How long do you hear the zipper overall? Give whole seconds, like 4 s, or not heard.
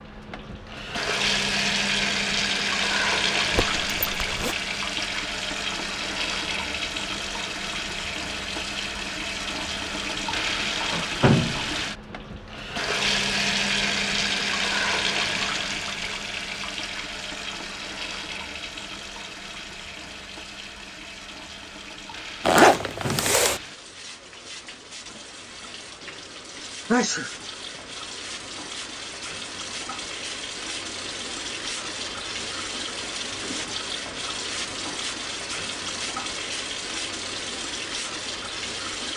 2 s.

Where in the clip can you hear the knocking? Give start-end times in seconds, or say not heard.
not heard.